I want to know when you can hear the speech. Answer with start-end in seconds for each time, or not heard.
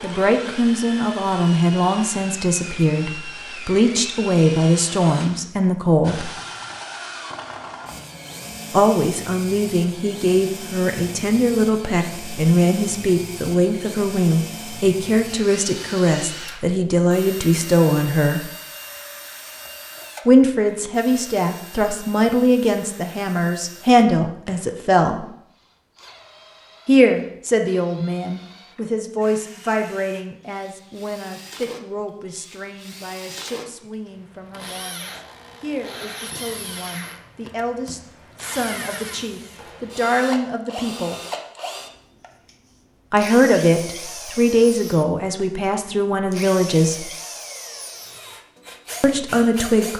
0.0-6.3, 8.7-18.5, 20.2-25.2, 26.9-41.1, 43.1-47.1, 49.0-49.9.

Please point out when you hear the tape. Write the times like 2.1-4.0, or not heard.
not heard.